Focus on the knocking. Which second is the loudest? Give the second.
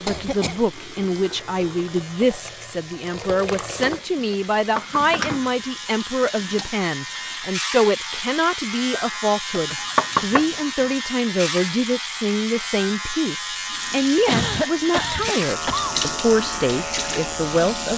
10 s.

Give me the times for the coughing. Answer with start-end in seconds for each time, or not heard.
0.1-0.6, 8.9-9.9, 14.2-15.9.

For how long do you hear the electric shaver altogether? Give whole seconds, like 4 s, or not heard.
18 s.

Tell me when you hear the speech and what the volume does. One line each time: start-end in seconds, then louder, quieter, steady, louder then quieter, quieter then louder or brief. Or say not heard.
0.0-17.9 steady.